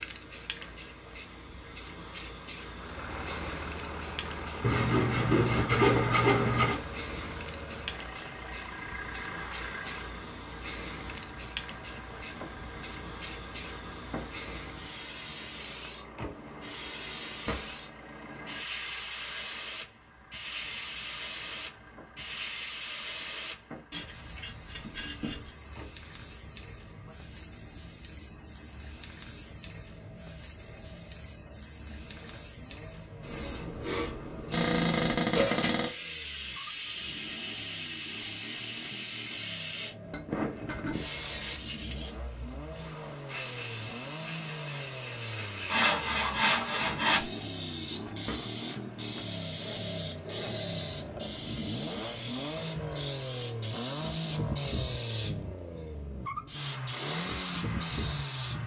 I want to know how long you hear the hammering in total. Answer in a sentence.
The hammering can't be heard in this clip.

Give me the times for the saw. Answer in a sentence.
The saw can be heard from 4.6 to 6.8 s, from 23.9 to 25.5 s and from 45.6 to 47.3 s.